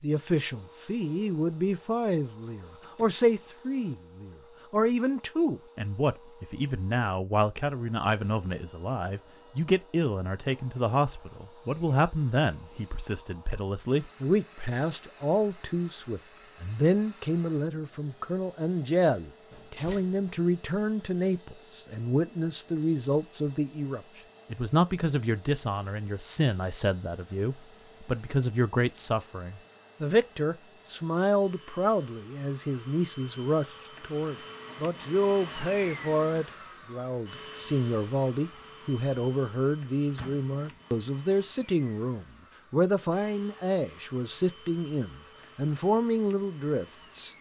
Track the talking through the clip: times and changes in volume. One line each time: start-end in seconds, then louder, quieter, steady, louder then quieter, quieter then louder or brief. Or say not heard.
0.0-47.3 steady.